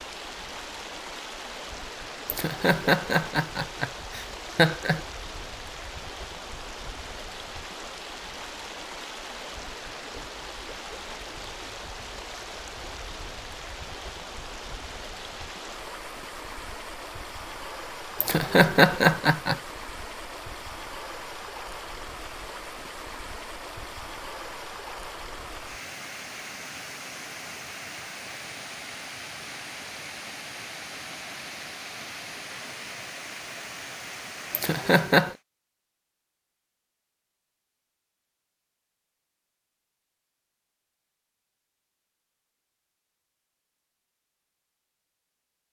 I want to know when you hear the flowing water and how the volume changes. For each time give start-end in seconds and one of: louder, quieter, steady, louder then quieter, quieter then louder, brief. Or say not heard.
0.0-35.4 steady.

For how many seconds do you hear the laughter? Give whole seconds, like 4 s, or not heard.
5 s.